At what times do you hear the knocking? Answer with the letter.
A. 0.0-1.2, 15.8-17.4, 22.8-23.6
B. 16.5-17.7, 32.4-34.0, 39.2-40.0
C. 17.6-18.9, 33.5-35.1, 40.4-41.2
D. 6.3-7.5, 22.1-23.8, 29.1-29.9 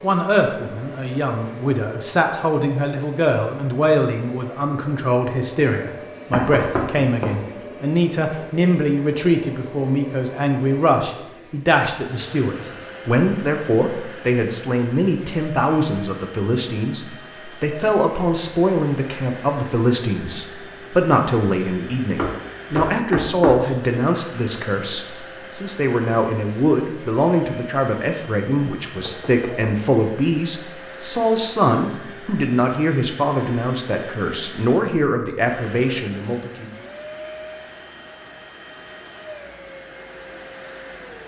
D.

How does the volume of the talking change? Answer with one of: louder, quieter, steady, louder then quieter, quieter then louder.
steady.